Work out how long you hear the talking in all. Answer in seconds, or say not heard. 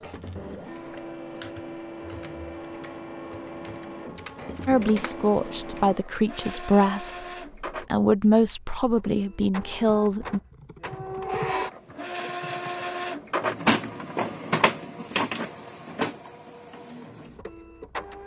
6 s.